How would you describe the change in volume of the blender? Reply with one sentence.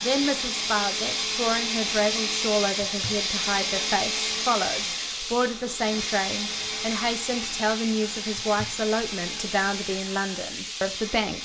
The loudness of the blender goes down.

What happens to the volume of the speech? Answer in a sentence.
The loudness of the speech stays about the same.